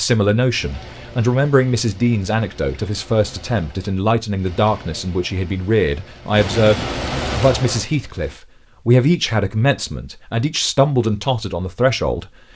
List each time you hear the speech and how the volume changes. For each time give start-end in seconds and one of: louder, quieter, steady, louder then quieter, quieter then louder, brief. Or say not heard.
0.0-12.2 steady.